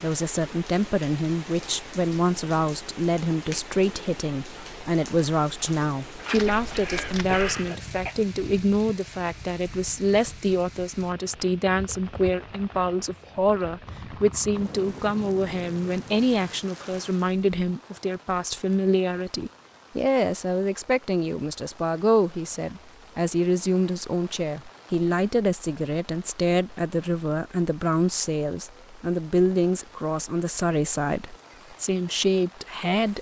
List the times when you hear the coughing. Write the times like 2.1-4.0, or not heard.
6.2-8.2.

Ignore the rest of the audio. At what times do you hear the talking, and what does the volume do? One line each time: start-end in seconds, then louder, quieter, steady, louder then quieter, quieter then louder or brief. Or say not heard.
0.0-33.1 steady.